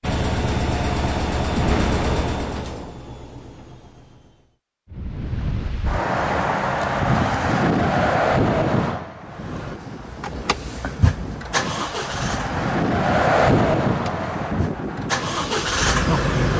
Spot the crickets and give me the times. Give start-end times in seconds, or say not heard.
not heard.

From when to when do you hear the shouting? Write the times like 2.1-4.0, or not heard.
not heard.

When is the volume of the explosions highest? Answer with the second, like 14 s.
2 s.